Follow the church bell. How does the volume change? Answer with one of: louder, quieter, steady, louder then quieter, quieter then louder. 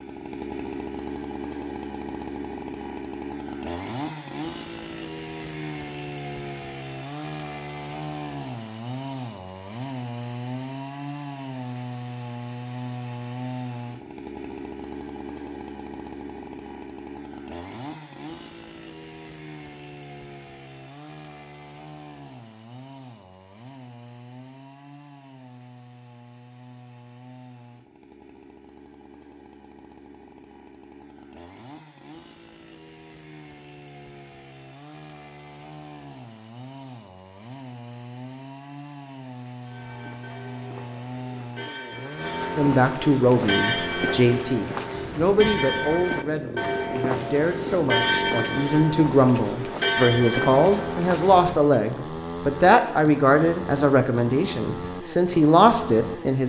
louder.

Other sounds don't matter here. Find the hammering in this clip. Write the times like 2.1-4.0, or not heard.
not heard.